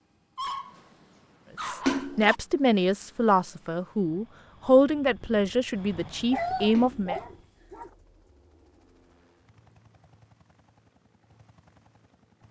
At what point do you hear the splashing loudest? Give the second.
2 s.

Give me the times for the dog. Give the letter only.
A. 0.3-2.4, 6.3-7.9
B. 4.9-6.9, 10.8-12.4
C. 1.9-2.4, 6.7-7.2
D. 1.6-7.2
A.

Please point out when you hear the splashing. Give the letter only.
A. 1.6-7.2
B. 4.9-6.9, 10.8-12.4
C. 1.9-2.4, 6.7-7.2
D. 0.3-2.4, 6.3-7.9
C.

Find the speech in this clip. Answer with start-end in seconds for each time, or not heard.
1.6-7.2.